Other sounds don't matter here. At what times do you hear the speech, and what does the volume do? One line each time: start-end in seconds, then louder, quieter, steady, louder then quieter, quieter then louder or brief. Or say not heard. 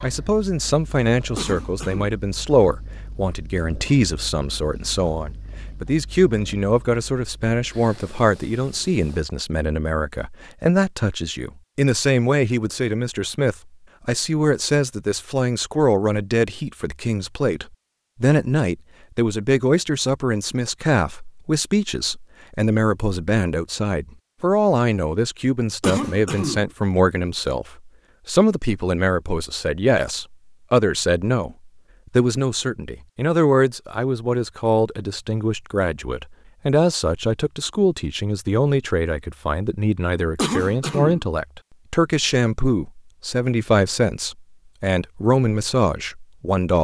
0.0-46.7 steady.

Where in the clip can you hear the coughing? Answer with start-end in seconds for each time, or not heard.
1.4-2.1, 25.8-26.6, 40.4-41.2.